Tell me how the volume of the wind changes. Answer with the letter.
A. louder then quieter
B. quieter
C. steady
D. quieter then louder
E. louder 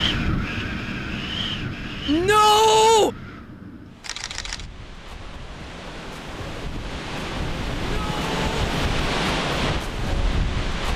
D.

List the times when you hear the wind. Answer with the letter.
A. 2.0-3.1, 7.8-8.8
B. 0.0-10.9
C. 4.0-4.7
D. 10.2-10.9
B.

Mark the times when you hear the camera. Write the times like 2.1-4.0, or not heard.
4.0-4.7.